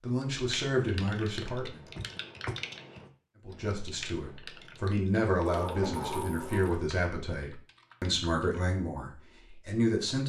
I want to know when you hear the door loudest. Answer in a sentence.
The volume of the door peaks at 6 seconds.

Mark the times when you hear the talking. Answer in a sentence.
You can hear the talking from 0.0 to 1.8 s and from 3.5 to 10.2 s.